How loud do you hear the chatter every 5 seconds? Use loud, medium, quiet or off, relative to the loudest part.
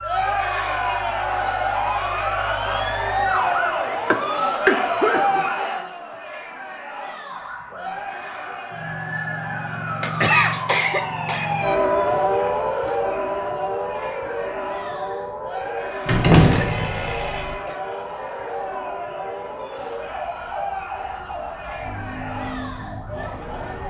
loud, medium, medium, medium, medium.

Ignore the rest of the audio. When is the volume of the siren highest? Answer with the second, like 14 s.
12 s.